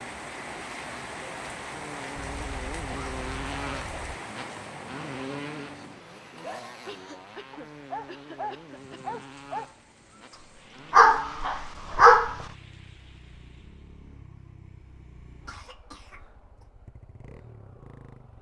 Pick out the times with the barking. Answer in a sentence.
The barking can be heard from 5.8 to 12.4 s.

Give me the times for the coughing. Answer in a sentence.
The coughing can be heard from 2.1 to 4.2 s, from 6.8 to 9.2 s and from 15.4 to 16.6 s.